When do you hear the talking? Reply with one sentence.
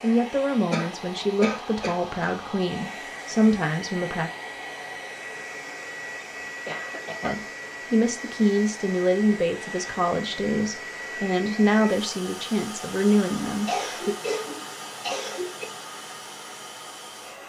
The talking can be heard from 0.0 to 4.3 s and from 7.2 to 14.2 s.